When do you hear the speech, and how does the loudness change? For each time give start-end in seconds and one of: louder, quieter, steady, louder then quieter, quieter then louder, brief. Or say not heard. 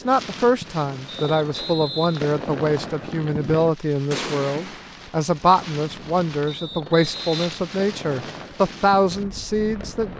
0.0-10.1 steady.